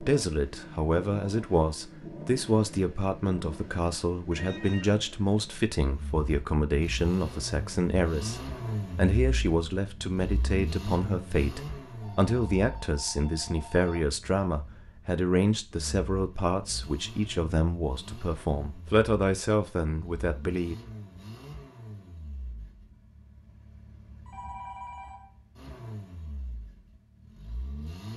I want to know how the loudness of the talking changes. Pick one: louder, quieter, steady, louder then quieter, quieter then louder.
steady.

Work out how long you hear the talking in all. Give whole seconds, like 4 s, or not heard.
21 s.